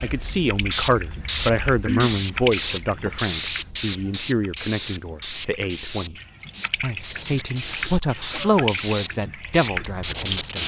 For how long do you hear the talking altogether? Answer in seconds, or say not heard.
10 s.